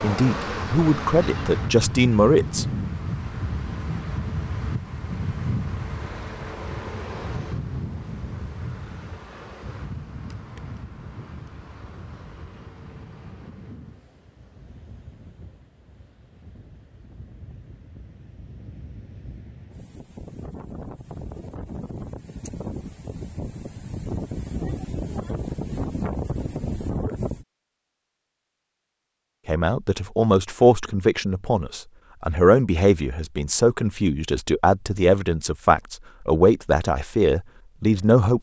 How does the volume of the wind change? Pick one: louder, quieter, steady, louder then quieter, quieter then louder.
quieter then louder.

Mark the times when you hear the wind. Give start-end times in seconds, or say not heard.
0.0-27.4.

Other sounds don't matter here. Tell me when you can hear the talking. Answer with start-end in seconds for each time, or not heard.
0.0-2.9, 29.4-38.3.